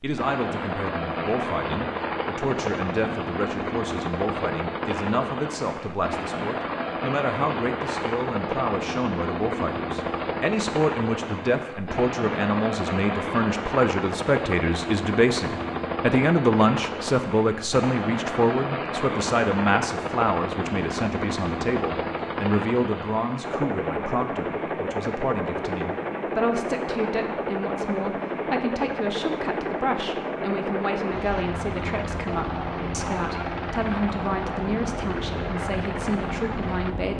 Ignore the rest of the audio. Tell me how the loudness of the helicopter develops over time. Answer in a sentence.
The loudness of the helicopter stays about the same.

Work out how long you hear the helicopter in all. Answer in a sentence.
The helicopter can be heard for 37 seconds in total.